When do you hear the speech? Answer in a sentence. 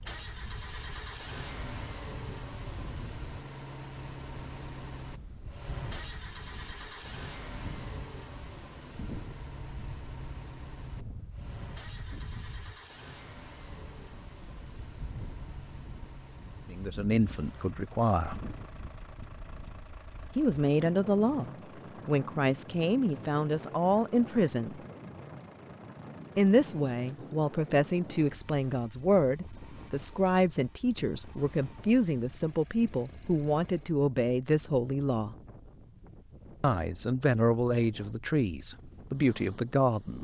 The speech can be heard from 16.7 to 18.4 s, from 20.4 to 24.8 s, from 26.4 to 35.4 s and from 36.6 to 40.1 s.